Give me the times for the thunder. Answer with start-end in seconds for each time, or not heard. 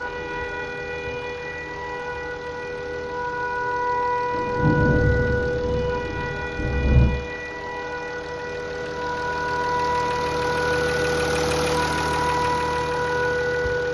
4.3-7.1.